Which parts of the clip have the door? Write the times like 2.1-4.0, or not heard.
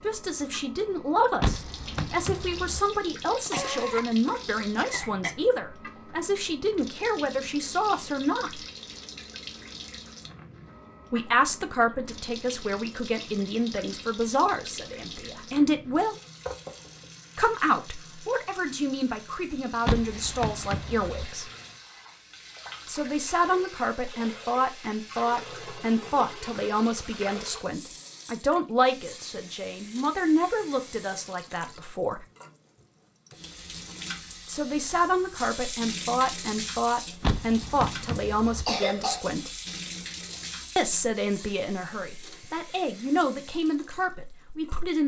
1.4-2.9, 19.9-21.2, 37.2-38.6.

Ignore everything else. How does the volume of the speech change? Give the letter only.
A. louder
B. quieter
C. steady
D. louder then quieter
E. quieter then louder
C.